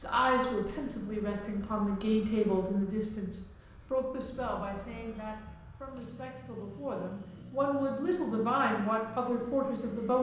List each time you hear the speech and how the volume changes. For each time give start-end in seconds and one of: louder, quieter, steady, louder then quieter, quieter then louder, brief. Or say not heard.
0.0-10.1 quieter then louder.